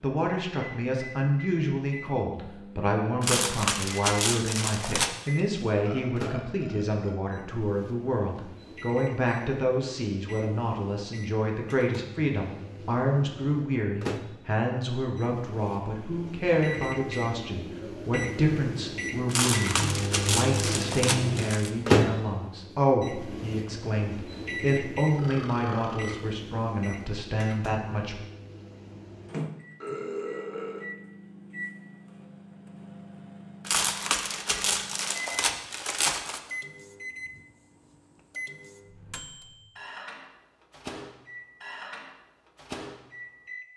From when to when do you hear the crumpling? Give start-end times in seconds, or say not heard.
3.2-5.1, 19.2-21.7, 33.6-36.4.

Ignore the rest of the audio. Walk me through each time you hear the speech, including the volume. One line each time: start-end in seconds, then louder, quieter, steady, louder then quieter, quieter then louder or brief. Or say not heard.
0.0-28.2 steady.